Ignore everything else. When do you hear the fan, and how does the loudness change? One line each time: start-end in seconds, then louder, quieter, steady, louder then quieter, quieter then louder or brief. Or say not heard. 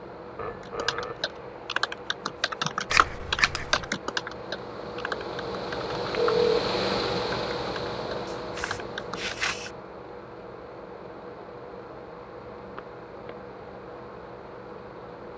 0.0-15.3 louder then quieter.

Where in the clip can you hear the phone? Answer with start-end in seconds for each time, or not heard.
0.3-1.2, 6.1-6.6, 12.8-13.3.